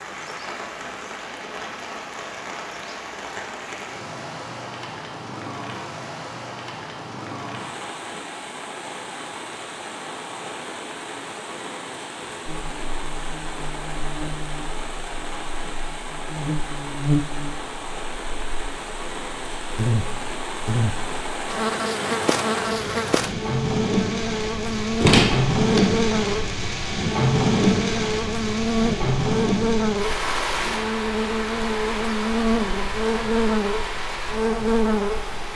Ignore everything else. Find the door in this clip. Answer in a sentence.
You can hear the door from 25.0 to 25.8 s.